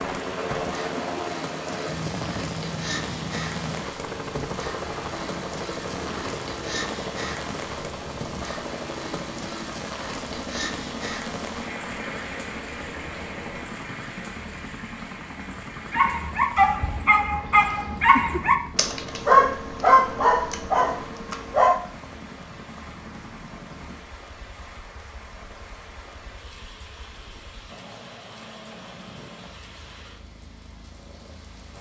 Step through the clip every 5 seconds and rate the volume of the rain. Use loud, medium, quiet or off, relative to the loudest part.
loud, loud, loud, medium, medium, medium, quiet.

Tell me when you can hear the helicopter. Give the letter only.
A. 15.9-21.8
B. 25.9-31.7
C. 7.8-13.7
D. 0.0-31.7
D.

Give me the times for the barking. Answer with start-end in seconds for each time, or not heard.
15.9-21.8.